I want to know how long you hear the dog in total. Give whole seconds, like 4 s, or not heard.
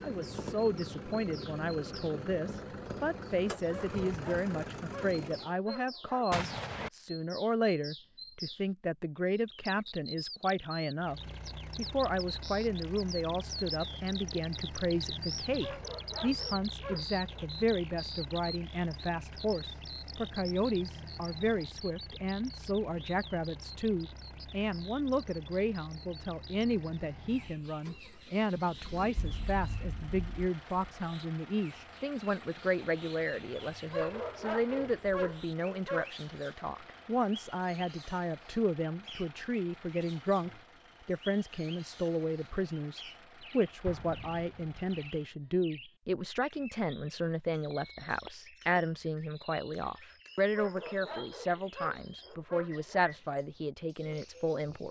9 s.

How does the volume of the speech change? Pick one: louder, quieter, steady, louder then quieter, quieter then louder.
steady.